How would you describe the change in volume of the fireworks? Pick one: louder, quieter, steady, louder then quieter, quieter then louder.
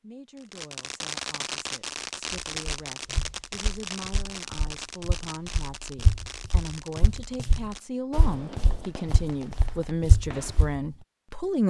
quieter.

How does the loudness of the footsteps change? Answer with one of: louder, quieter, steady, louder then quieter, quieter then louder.
louder.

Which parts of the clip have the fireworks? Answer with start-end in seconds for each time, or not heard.
0.4-10.8.